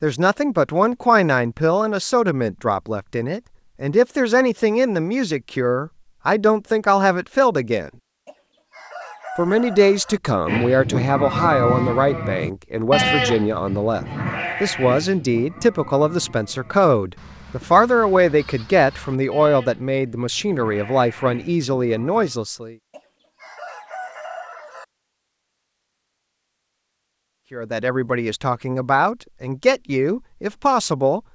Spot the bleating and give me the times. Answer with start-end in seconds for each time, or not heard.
10.4-22.4.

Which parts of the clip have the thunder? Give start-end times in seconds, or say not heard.
not heard.